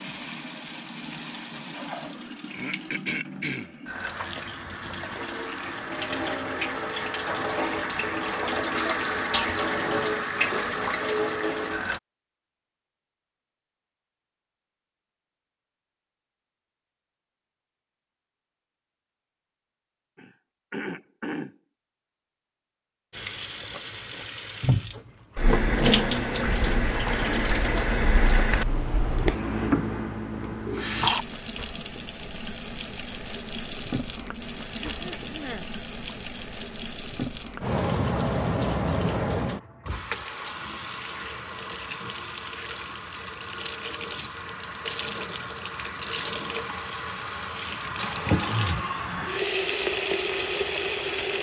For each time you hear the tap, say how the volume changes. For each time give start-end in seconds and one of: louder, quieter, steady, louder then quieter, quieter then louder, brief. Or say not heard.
0.0-12.0 louder
23.1-51.3 quieter then louder.